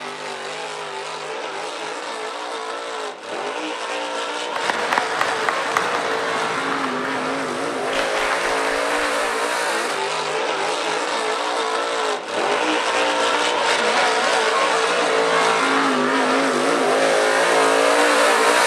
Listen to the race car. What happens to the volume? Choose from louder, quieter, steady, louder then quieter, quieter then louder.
louder.